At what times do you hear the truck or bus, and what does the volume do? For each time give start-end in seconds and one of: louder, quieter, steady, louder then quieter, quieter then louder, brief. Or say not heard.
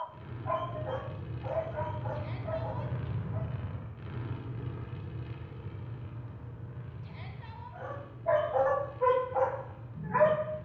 0.0-10.6 quieter.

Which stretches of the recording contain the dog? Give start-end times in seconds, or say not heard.
0.0-3.5, 7.8-10.6.